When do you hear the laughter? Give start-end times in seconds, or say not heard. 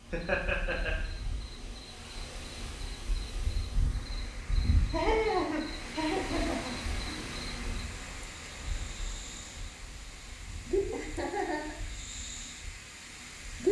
0.1-0.9, 4.9-6.8, 10.9-11.8.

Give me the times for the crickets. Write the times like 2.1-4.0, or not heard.
0.0-13.6.